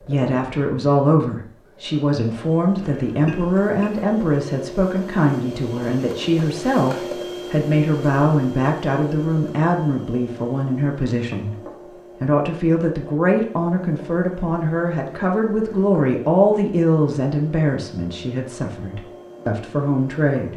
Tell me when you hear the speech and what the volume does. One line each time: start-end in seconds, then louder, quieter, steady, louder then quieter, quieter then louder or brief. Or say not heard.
0.0-20.5 steady.